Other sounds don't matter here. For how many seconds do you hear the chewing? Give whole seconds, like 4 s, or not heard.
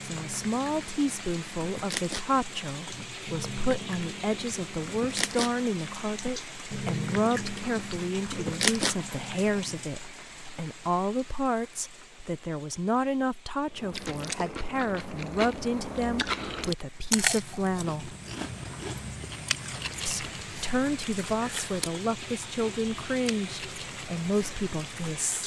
21 s.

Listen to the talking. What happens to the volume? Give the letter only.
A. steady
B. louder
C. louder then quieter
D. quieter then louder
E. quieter
A.